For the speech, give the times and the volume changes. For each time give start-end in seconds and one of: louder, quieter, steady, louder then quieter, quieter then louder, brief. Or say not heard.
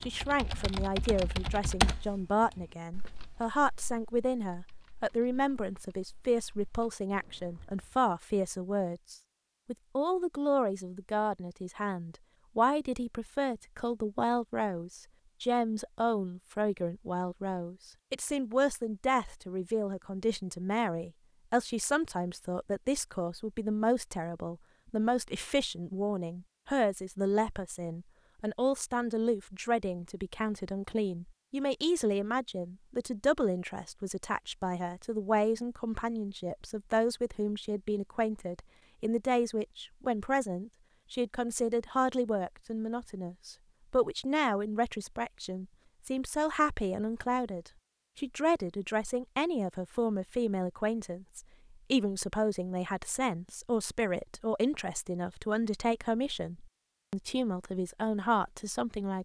0.0-59.2 steady.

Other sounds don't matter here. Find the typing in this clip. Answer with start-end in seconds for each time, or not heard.
0.0-8.0.